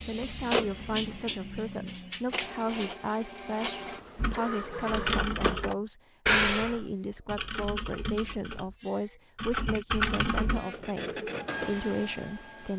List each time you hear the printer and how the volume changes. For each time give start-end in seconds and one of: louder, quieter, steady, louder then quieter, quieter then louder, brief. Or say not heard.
0.0-5.8 quieter
10.2-12.7 brief.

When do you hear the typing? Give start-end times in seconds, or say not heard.
4.2-10.7.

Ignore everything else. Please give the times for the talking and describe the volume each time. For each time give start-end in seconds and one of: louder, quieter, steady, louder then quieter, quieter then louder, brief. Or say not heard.
0.1-12.7 steady.